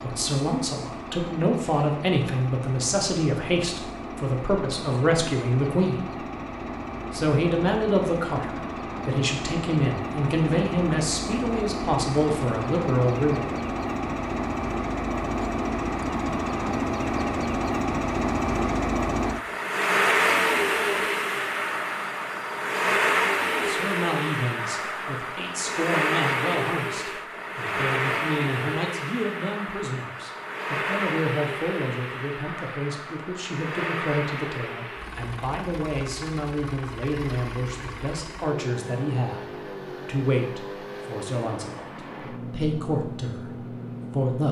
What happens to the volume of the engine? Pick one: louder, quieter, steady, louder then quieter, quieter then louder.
louder then quieter.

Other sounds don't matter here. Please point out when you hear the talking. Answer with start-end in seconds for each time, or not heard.
0.0-6.2, 7.1-13.6, 23.6-44.4.